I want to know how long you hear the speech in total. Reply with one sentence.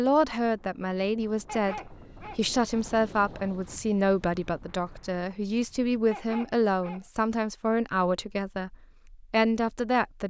You can hear the speech for 10 seconds altogether.